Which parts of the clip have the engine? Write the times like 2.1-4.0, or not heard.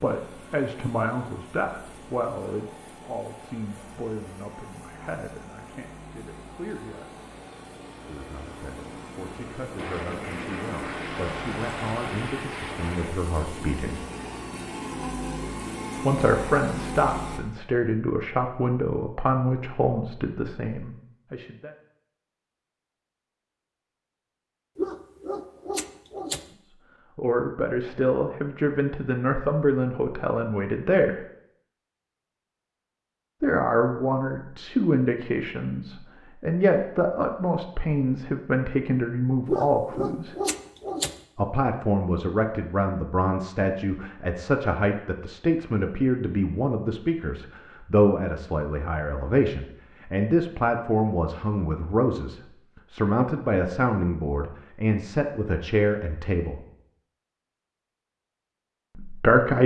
0.0-17.4.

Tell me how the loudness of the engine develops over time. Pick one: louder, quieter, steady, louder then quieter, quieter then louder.
louder.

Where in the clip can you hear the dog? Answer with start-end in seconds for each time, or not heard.
24.8-26.4, 39.5-41.1.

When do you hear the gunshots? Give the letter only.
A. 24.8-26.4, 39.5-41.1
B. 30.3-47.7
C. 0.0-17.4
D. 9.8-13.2
D.